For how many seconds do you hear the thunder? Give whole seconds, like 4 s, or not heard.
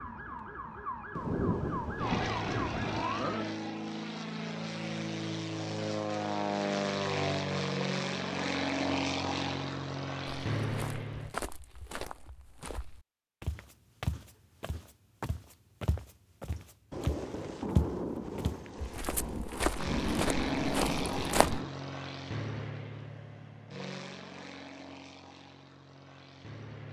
7 s.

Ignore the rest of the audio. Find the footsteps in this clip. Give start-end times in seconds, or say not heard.
10.2-21.6.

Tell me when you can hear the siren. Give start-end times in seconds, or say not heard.
0.0-3.6.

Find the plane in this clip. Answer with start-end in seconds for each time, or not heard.
1.9-11.3, 19.8-26.8.